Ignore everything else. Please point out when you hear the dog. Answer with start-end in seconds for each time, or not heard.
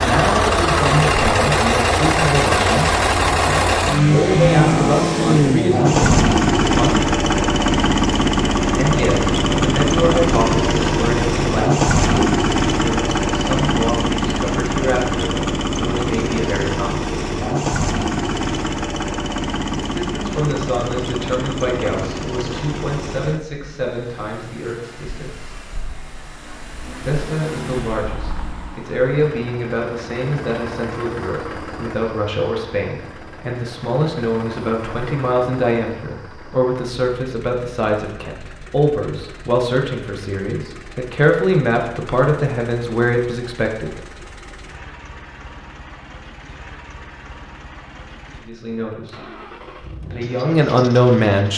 not heard.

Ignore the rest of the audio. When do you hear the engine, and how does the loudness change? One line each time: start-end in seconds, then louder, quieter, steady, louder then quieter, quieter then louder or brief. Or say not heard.
0.0-51.5 quieter.